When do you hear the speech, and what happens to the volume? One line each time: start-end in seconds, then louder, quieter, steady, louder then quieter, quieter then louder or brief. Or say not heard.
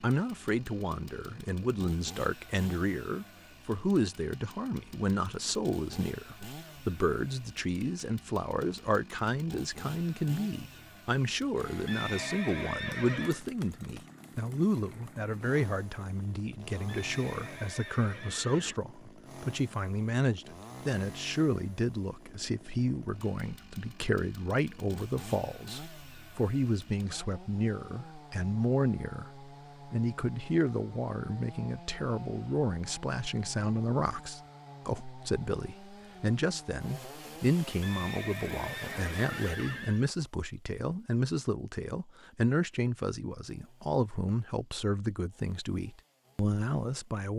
0.0-47.3 steady.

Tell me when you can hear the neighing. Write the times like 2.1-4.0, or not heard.
11.8-13.4, 16.9-18.8, 37.8-40.0.